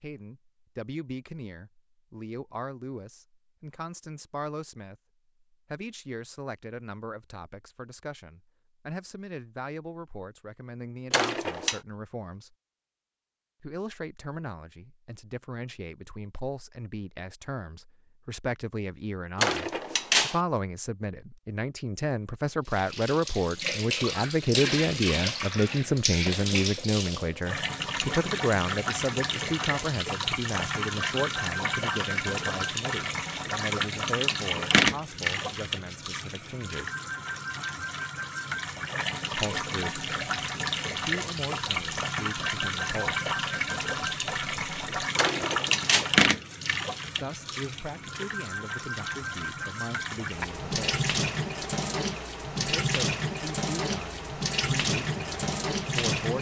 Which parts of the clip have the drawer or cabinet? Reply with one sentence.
The drawer or cabinet can be heard from 11.1 to 11.8 s, from 19.4 to 20.4 s and from 45.1 to 46.0 s.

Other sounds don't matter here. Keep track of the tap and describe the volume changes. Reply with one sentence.
The loudness of the tap stays about the same.